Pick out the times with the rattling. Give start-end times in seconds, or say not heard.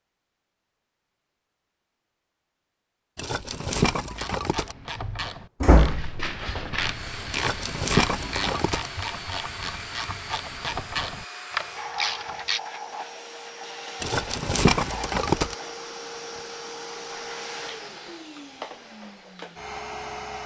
3.1-4.8, 7.3-8.9, 14.0-15.6.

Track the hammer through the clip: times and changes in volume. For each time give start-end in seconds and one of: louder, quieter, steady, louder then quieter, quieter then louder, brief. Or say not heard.
not heard.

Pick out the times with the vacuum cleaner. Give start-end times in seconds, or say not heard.
6.8-20.4.